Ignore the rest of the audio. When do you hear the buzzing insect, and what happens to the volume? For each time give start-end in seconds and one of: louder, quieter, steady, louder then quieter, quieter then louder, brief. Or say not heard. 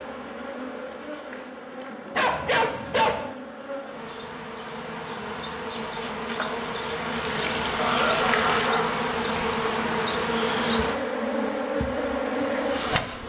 0.0-13.2 louder.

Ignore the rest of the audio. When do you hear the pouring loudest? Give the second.
8 s.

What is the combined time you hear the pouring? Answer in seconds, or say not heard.
2 s.